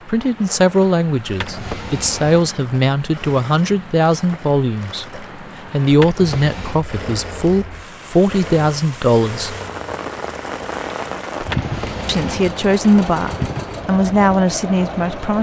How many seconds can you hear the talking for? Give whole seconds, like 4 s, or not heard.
13 s.